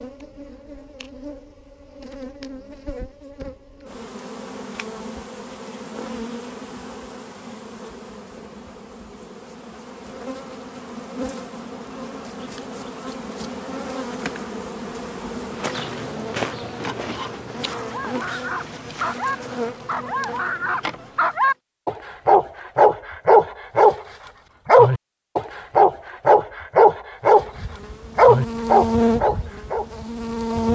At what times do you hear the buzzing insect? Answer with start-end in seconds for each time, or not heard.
0.0-21.6, 27.4-30.6.